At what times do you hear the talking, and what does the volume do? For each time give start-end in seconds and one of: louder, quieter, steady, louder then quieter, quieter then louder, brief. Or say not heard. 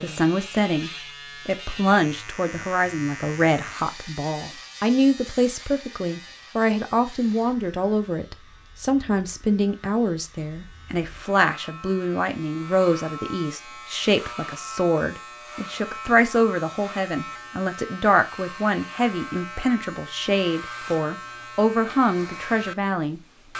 0.0-23.5 steady.